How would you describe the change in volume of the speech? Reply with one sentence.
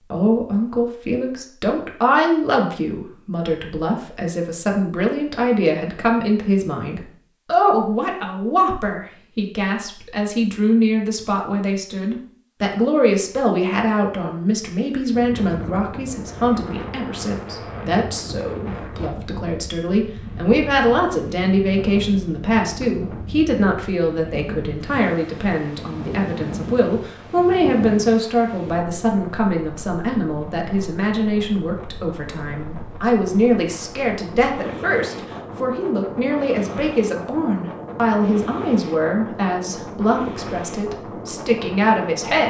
The loudness of the speech stays about the same.